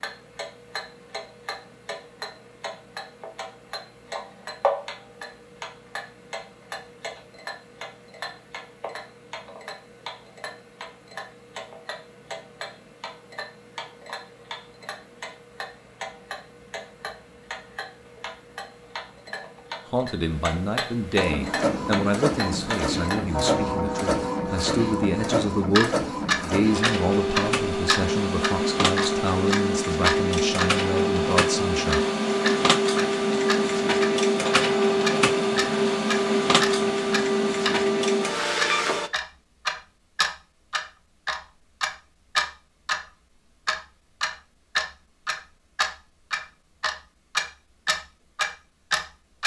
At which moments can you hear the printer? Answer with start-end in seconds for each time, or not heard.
21.1-39.1.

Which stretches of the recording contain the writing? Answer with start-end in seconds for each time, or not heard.
not heard.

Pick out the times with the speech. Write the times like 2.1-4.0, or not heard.
19.9-32.0.